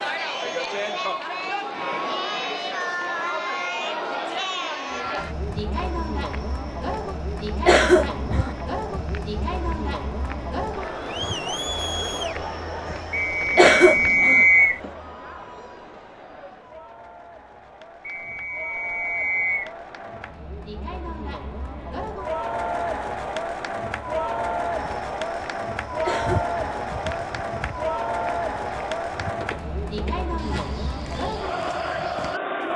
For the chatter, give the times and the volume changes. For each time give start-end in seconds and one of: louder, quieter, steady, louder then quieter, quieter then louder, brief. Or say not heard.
0.0-32.7 quieter then louder.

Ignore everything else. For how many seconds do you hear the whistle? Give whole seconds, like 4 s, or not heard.
3 s.